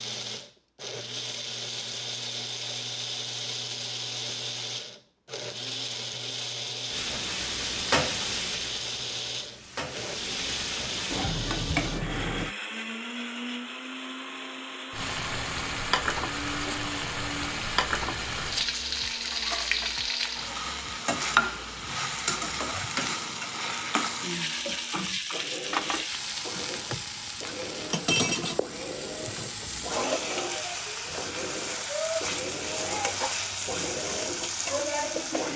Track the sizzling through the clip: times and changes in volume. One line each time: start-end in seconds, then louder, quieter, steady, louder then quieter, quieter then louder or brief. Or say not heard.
6.9-12.6 quieter then louder
14.9-35.5 steady.